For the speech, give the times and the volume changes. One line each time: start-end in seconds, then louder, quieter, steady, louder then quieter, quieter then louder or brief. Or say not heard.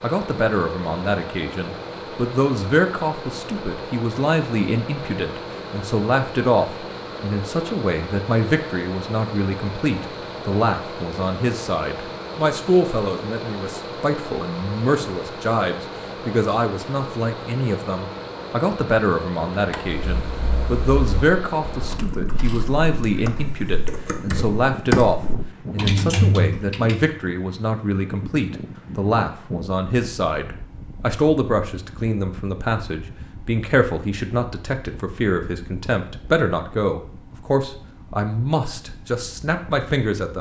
0.0-40.3 steady.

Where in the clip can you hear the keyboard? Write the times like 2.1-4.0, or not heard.
19.6-27.1.